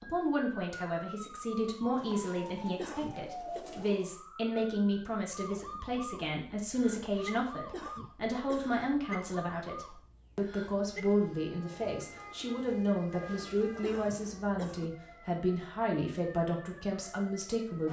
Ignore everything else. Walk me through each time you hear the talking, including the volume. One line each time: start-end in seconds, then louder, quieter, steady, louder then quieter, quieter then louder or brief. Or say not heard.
0.0-17.8 steady.